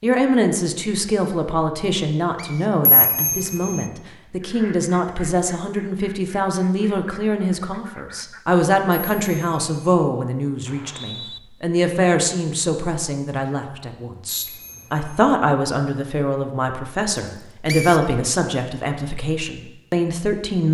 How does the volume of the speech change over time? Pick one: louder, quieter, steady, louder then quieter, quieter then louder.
steady.